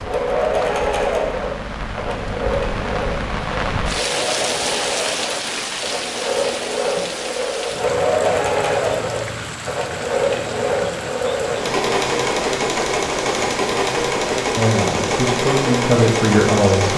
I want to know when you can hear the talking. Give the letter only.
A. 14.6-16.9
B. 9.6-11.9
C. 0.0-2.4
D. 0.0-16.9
A.